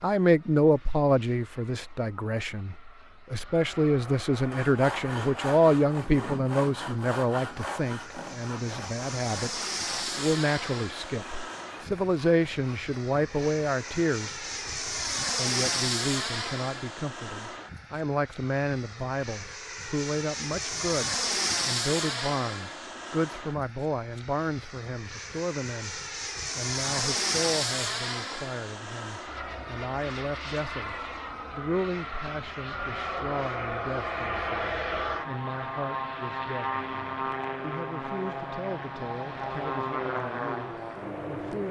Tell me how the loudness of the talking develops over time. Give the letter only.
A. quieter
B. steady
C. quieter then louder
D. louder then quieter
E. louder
A.